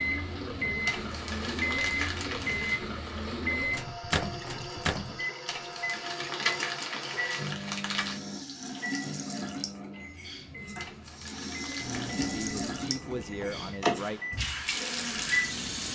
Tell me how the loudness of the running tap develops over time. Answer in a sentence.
The volume of the running tap goes up.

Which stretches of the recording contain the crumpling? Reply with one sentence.
You can hear the crumpling from 0.8 to 2.8 s, from 5.5 to 8.2 s and from 10.8 to 12.2 s.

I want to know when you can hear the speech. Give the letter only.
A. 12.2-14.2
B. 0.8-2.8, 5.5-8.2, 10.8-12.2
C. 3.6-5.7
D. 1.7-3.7
A.